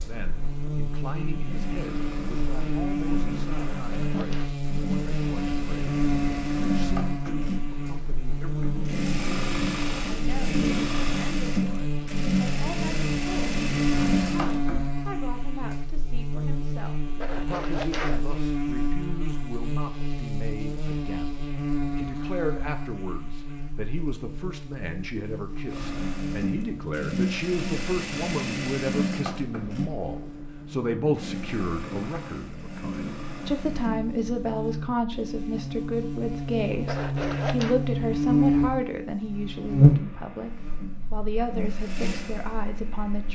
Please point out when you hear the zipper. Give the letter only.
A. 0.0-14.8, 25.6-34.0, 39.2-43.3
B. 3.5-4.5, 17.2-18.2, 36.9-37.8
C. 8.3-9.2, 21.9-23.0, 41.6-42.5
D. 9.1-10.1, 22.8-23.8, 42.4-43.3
B.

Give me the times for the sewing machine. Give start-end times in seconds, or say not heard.
0.0-14.8, 25.6-34.0, 39.2-43.3.